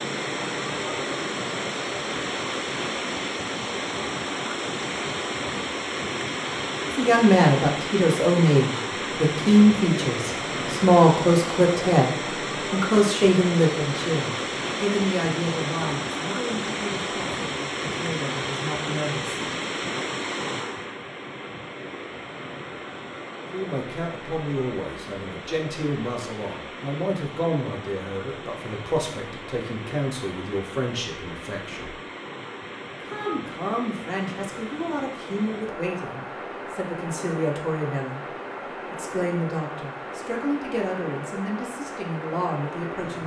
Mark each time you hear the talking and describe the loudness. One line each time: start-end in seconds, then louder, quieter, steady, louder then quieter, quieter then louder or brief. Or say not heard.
6.8-19.4 quieter
23.5-32.0 steady
33.0-43.2 steady.